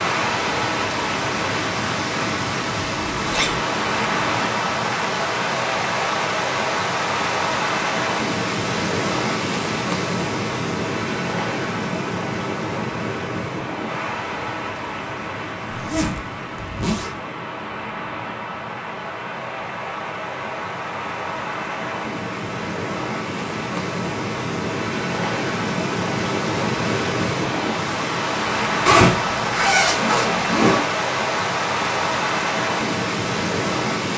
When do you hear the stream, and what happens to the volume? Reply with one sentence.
The stream can be heard from 0.0 to 34.1 s, getting quieter then louder.